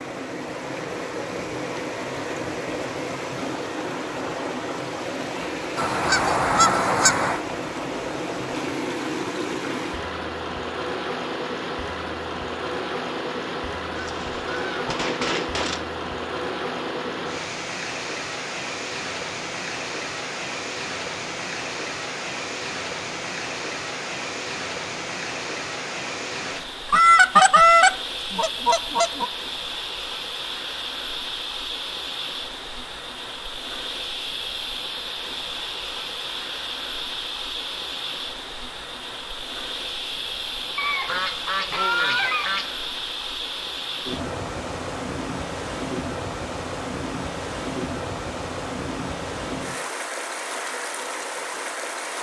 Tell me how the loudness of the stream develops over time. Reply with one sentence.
The volume of the stream stays about the same.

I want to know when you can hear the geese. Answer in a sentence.
The geese can be heard from 5.8 to 7.4 s, from 13.9 to 15.8 s, from 26.9 to 29.2 s and from 40.8 to 42.7 s.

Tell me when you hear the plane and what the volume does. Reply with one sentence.
The plane can't be heard in this clip.